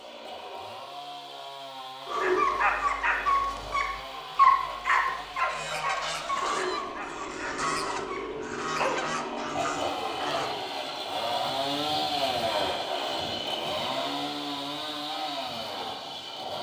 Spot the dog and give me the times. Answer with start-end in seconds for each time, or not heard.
2.0-8.9.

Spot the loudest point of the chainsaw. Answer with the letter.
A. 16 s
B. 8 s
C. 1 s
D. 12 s
D.